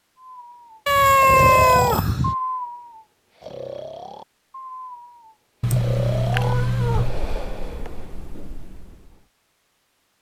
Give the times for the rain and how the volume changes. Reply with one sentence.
The rain can't be heard in this clip.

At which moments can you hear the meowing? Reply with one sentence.
The meowing can be heard from 0.8 to 2.4 s and from 5.6 to 7.2 s.